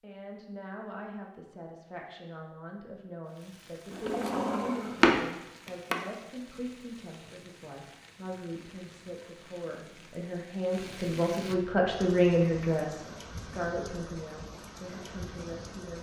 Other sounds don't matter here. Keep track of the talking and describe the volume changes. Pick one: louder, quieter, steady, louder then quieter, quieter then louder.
louder then quieter.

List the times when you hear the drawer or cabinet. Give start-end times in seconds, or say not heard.
3.9-6.0.